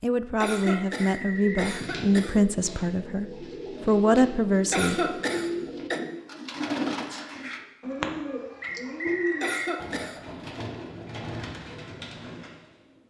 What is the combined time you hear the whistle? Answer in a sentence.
You can hear the whistle for 2 seconds altogether.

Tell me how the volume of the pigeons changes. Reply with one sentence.
The loudness of the pigeons goes up, then down.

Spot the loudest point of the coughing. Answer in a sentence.
The volume of the coughing peaks at 5 seconds.